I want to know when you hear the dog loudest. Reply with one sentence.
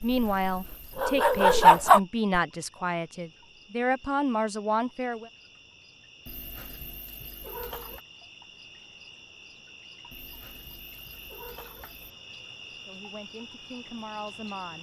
The volume of the dog peaks at 2 seconds.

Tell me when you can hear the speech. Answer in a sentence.
The speech can be heard from 0.0 to 5.3 s and from 12.8 to 14.7 s.